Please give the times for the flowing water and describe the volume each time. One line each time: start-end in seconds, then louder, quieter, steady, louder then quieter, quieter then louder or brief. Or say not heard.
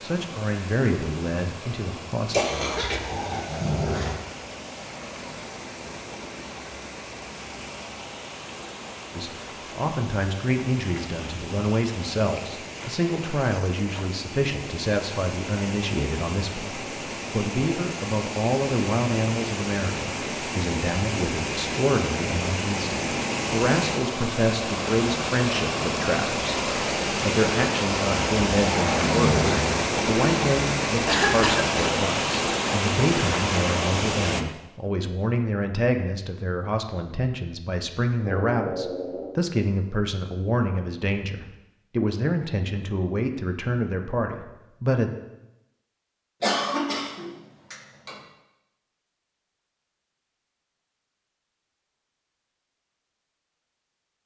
0.0-34.5 louder.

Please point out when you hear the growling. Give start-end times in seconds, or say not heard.
2.5-4.2, 28.1-29.7, 38.2-39.4.